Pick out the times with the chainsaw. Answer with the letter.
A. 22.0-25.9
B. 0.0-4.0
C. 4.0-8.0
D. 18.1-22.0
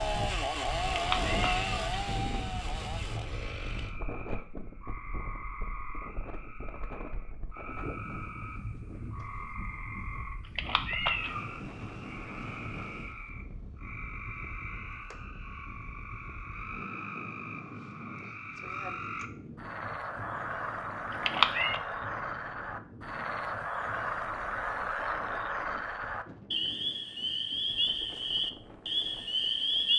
B.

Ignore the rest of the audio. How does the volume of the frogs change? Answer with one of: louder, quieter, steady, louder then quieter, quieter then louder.
louder.